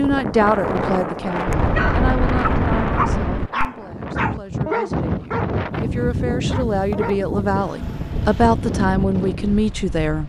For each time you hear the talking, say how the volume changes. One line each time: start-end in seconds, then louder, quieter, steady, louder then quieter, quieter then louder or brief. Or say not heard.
0.0-10.2 quieter then louder.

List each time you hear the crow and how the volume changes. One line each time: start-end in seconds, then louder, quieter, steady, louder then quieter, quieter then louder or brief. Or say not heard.
not heard.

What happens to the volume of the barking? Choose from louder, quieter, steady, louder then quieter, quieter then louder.
quieter.